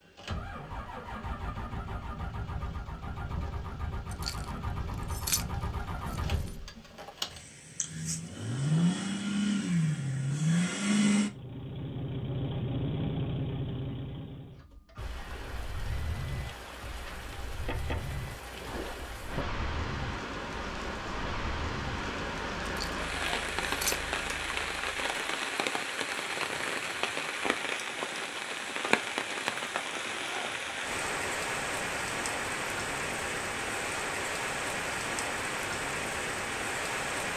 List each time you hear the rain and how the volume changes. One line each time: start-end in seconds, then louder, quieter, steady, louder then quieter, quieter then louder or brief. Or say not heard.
14.9-37.3 louder.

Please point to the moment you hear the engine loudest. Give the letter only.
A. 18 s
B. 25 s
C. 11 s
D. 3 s
C.